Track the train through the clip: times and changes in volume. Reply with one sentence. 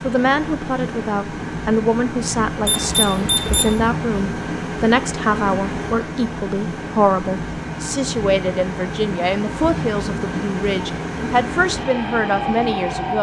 The train can be heard from 0.0 to 13.1 s, at a steady volume.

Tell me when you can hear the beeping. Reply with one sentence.
The beeping can be heard from 2.6 to 3.8 s.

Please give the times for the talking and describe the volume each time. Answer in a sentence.
The talking can be heard from 0.0 to 13.1 s, at a steady volume.